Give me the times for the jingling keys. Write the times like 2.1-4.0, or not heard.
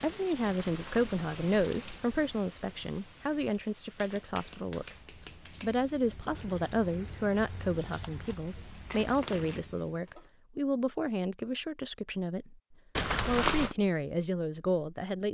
0.4-2.0, 6.3-8.3, 12.9-13.8.